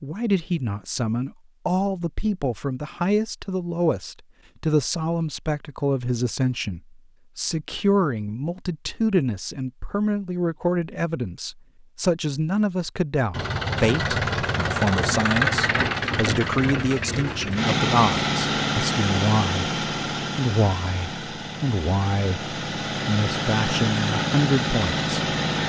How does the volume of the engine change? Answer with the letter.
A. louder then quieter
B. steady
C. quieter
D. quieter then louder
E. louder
D.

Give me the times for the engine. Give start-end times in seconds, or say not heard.
13.3-25.6.